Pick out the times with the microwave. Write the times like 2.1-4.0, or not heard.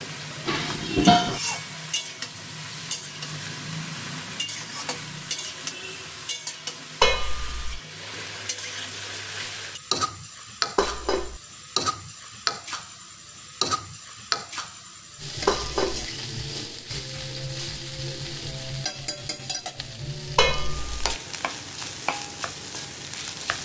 not heard.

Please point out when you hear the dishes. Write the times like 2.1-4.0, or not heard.
0.5-1.4, 7.0-7.8, 10.8-11.4, 15.4-16.1, 20.4-21.1.